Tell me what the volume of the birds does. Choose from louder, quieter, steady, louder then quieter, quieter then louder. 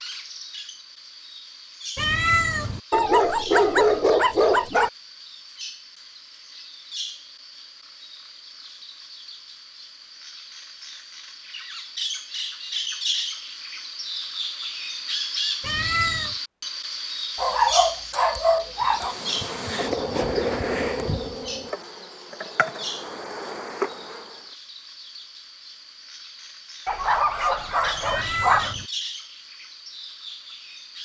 louder then quieter.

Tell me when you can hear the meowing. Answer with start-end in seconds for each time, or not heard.
1.9-2.8, 15.6-16.4, 28.0-28.9.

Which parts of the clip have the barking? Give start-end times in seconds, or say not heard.
2.9-4.9, 17.4-19.1, 26.9-28.8.